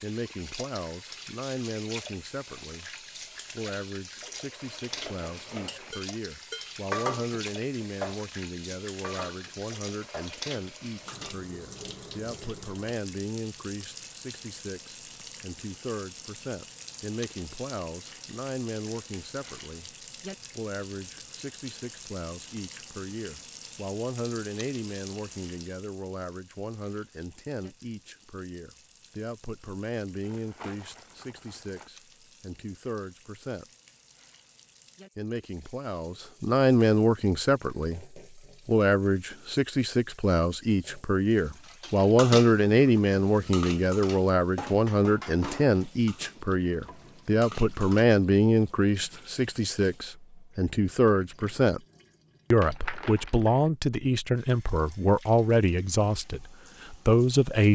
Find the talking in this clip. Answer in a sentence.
You can hear the talking from 0.0 to 19.9 s, from 20.6 to 33.6 s, from 35.1 to 51.8 s and from 52.5 to 57.7 s.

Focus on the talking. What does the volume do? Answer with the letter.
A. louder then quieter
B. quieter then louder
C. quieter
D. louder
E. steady
D.